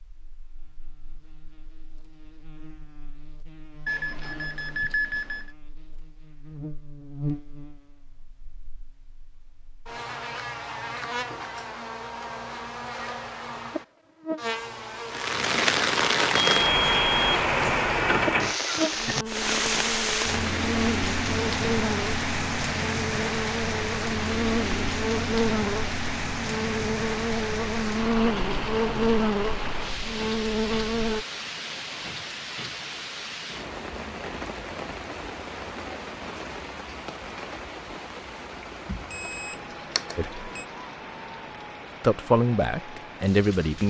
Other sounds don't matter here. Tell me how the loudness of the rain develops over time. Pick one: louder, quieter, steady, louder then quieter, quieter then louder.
quieter.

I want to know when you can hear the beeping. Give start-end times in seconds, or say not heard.
3.9-5.5, 16.4-17.8, 39.1-40.6.